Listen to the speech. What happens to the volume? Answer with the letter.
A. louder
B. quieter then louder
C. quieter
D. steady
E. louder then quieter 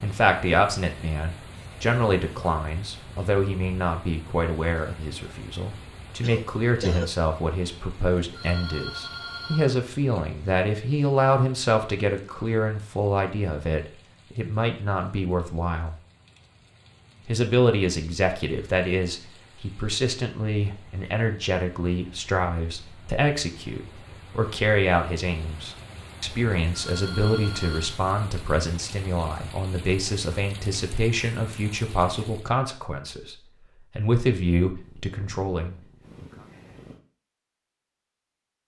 D.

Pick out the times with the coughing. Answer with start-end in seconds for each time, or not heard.
6.2-7.1.